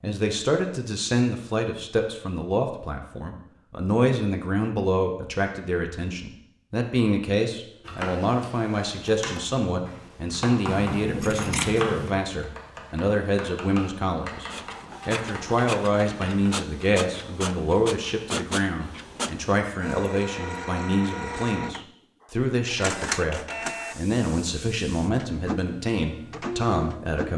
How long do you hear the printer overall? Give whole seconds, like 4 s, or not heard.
13 s.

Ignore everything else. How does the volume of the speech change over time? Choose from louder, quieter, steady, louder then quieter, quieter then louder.
steady.